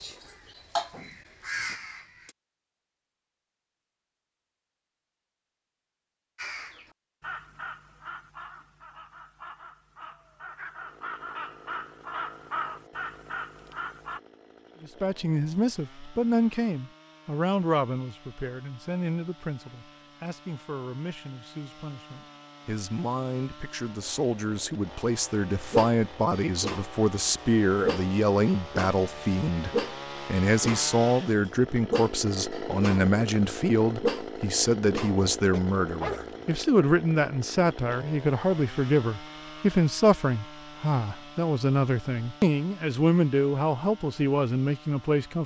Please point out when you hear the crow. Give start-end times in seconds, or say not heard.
0.0-2.4, 6.3-14.2.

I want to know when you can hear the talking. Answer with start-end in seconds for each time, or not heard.
14.8-45.4.